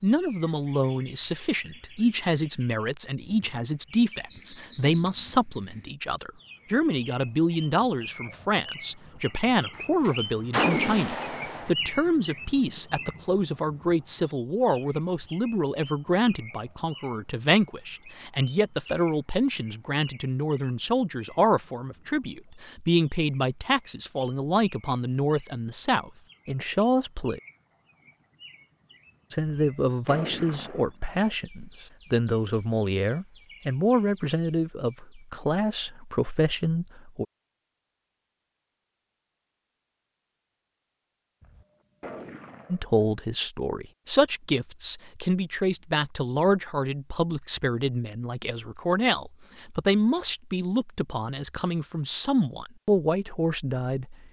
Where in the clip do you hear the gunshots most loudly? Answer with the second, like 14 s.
11 s.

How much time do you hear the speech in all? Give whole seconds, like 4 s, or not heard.
47 s.